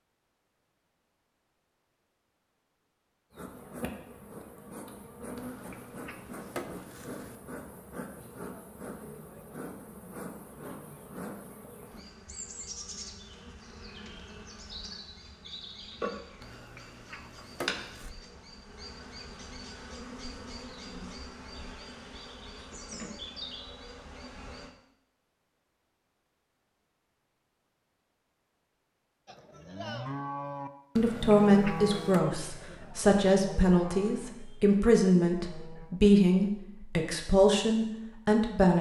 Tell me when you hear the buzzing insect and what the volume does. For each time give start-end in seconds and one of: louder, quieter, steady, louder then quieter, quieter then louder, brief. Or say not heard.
3.3-24.8 steady.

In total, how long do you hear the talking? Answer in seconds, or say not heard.
8 s.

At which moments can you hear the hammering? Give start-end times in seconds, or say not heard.
not heard.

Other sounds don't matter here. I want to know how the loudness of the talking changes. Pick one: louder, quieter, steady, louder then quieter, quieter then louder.
steady.